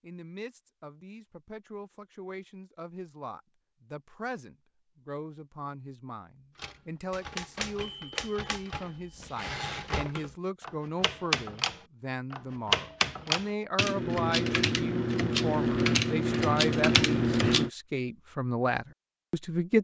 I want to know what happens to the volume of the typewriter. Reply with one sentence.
The loudness of the typewriter goes up.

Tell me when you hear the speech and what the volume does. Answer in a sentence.
You can hear the speech from 0.0 to 19.7 s, getting louder.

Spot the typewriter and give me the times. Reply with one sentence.
You can hear the typewriter from 6.5 to 17.7 s.